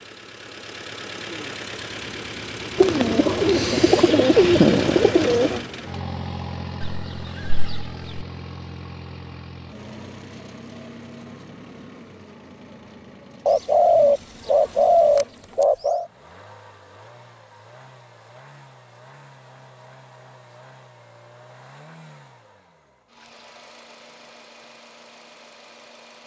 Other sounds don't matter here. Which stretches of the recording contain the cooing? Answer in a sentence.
The cooing can be heard from 2.8 to 5.6 s and from 13.4 to 16.1 s.